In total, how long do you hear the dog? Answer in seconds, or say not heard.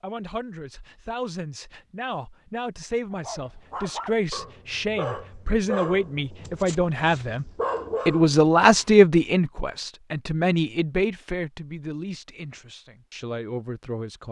6 s.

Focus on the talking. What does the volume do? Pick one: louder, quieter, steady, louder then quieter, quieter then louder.
louder then quieter.